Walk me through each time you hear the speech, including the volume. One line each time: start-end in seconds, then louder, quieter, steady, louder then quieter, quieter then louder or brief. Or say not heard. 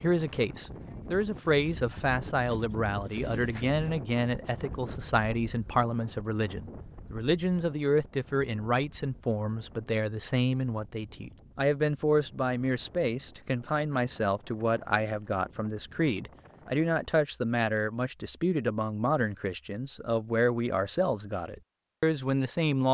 0.0-22.8 steady.